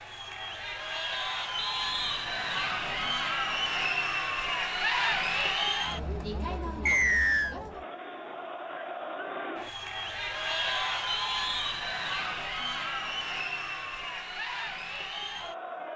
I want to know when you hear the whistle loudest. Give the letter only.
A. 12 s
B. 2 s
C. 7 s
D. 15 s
C.